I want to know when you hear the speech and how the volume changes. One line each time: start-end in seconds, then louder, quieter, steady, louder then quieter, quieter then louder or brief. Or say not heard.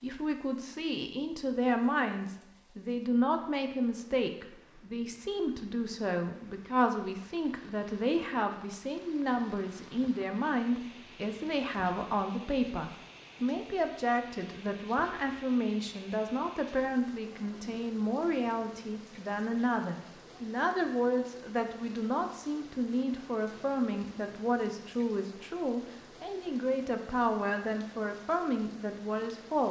0.0-29.6 steady.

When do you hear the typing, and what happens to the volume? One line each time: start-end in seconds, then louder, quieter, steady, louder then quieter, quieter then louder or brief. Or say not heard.
not heard.